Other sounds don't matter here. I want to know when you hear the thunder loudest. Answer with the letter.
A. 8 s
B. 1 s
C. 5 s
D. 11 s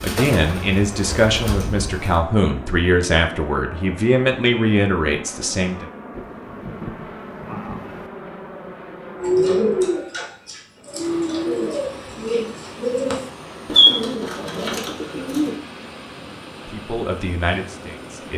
A.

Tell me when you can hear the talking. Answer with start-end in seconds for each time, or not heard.
0.0-5.8, 16.6-18.3.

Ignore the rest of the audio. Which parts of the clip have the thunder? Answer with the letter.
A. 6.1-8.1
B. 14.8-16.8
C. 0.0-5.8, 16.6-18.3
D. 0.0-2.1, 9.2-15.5
A.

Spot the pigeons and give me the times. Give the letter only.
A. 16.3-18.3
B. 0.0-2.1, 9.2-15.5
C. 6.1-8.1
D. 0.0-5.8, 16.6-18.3
B.